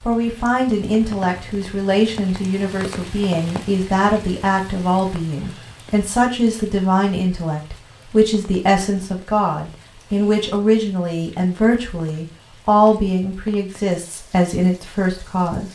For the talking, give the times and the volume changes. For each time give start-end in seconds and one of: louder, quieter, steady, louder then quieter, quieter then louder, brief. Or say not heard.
0.0-15.7 steady.